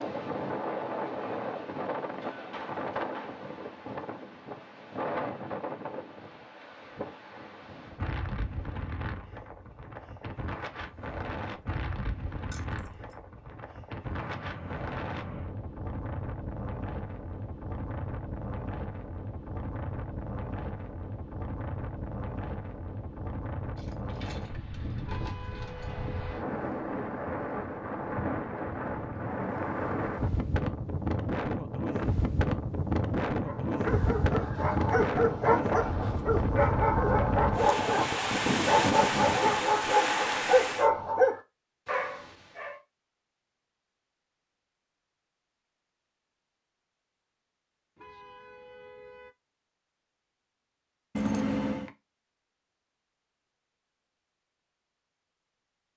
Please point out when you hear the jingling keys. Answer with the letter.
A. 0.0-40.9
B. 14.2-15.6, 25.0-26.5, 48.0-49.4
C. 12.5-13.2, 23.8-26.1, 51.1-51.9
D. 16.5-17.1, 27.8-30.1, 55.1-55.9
C.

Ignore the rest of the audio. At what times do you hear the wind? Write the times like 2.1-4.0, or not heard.
0.0-40.9.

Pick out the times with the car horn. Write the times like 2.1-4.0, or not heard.
14.2-15.6, 25.0-26.5, 48.0-49.4.